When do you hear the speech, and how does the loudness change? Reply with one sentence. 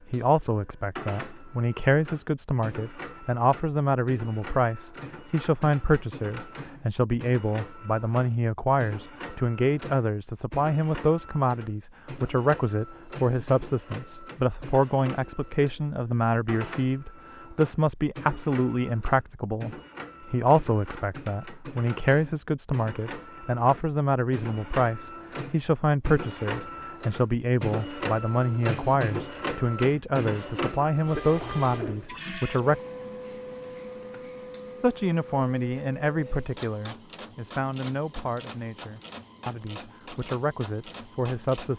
The speech can be heard from 0.1 to 32.8 s, at a steady volume; and from 34.8 to 41.7 s, getting quieter then louder.